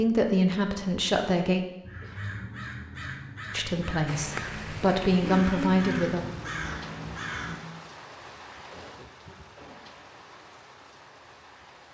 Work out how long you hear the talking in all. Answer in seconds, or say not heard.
4 s.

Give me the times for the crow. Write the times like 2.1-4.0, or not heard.
1.8-7.6.